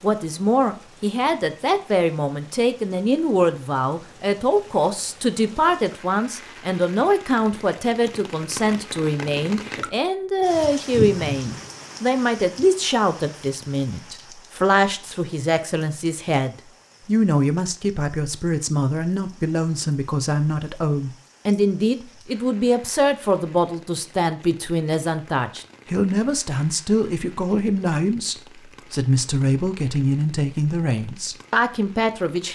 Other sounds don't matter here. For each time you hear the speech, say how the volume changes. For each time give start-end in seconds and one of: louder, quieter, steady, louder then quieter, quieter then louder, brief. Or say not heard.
0.0-32.4 steady.